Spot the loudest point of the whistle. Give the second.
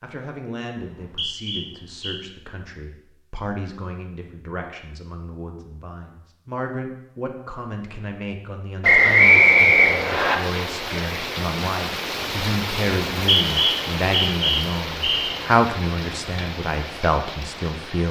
9 s.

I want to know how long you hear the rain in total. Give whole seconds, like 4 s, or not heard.
9 s.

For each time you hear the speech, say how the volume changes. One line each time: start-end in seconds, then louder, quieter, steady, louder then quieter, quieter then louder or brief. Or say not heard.
0.0-18.0 louder.